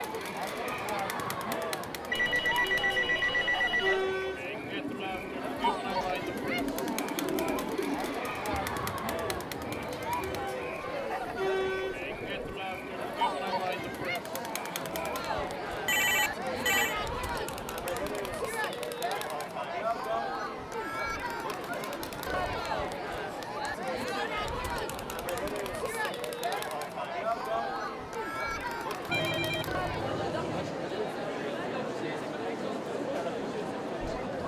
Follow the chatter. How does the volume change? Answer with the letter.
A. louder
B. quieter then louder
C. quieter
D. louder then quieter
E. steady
E.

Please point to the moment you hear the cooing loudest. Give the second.
7 s.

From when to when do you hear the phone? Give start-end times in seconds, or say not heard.
2.1-4.0, 15.8-16.9, 29.1-30.7.